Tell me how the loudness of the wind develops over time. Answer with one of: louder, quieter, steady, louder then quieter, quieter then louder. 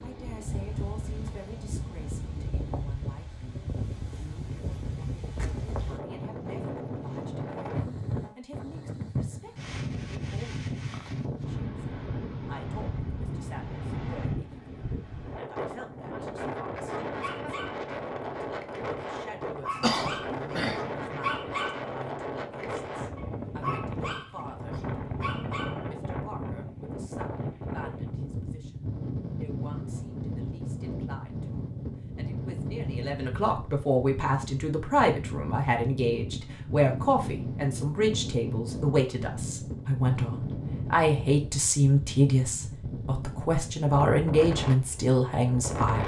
steady.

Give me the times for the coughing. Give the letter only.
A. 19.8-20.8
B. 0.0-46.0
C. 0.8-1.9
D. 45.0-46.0
A.